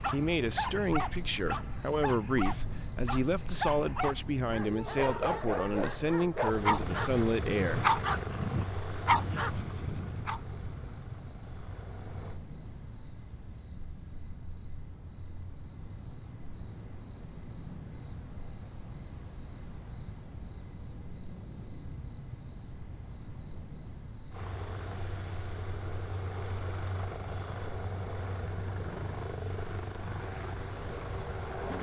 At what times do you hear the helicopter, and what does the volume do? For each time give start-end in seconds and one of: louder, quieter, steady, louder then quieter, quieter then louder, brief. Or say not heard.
6.4-12.4 quieter
24.3-31.7 steady.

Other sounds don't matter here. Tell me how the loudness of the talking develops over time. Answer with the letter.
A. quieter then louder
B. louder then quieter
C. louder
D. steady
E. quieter
D.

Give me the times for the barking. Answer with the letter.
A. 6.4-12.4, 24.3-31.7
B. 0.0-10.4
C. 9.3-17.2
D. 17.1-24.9
B.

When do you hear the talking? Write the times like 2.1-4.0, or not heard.
0.1-8.0.